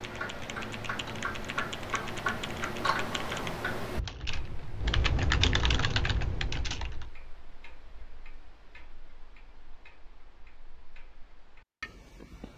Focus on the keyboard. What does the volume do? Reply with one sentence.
The volume of the keyboard goes up.